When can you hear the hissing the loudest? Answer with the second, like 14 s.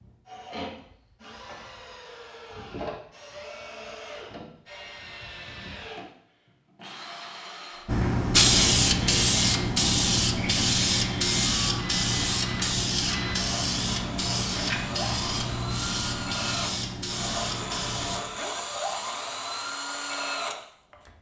9 s.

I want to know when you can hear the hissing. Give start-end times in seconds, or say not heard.
7.8-18.2.